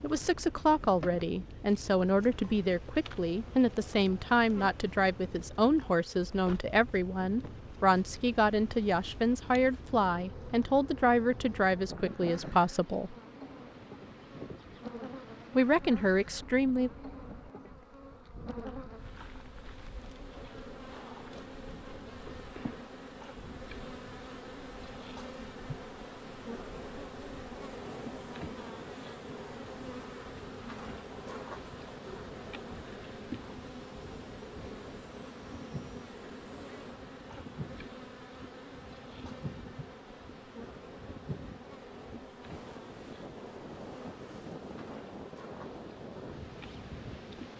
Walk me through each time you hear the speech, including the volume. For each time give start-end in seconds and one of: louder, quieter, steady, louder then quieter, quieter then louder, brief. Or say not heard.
0.0-13.2 steady
15.6-16.9 brief.